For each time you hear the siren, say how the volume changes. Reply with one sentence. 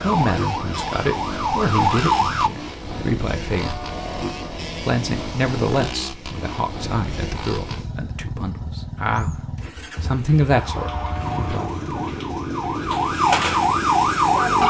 You can hear the siren briefly from 0.0 to 2.5 s; and from 10.6 to 14.6 s, getting louder.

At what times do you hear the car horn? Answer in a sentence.
You can hear the car horn from 3.5 to 4.6 s and from 10.8 to 12.1 s.